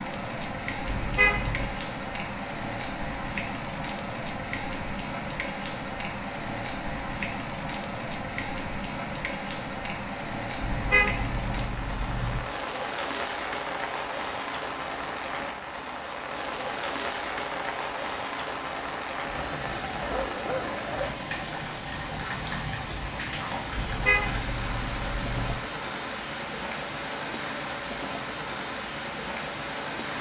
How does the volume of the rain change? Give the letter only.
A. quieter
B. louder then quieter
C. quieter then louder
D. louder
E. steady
E.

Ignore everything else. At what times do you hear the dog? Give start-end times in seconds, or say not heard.
20.0-21.2.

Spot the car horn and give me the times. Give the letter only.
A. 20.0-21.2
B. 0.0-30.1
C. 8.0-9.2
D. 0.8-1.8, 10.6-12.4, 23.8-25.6
D.